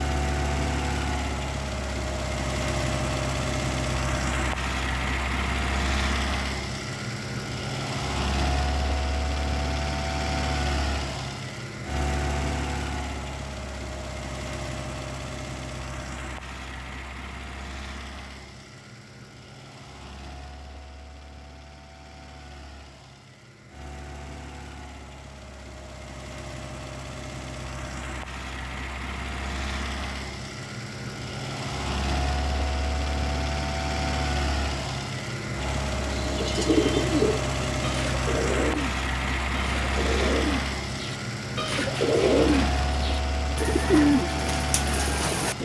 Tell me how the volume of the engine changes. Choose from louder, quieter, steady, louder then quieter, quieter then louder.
quieter then louder.